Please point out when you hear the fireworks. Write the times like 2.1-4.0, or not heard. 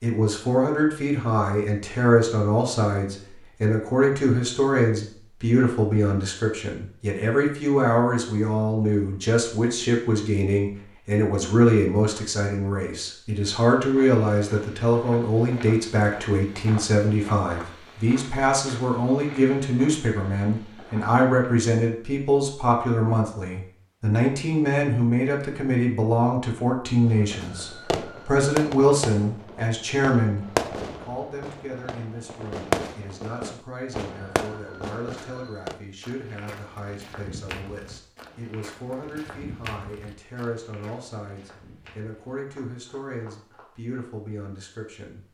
27.1-35.8.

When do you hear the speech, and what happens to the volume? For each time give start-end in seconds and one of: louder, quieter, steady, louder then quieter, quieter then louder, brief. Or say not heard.
0.0-45.2 quieter.